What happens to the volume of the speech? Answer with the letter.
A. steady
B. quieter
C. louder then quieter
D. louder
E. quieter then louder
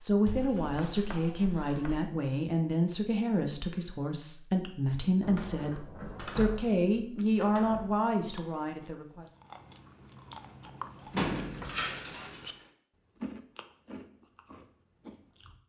A.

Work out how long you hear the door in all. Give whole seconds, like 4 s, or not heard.
6 s.